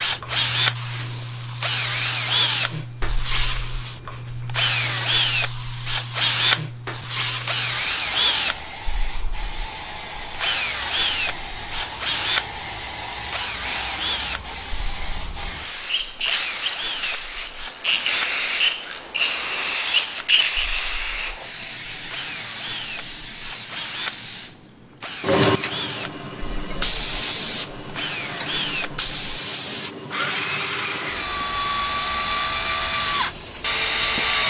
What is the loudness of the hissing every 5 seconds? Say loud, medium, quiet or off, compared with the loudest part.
medium, medium, medium, loud, loud, loud, medium.